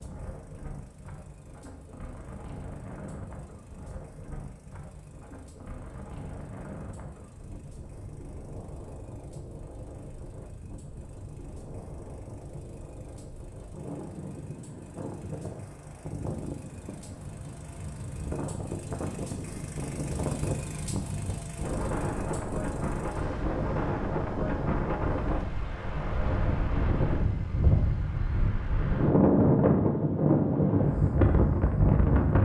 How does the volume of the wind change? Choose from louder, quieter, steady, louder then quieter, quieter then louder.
louder.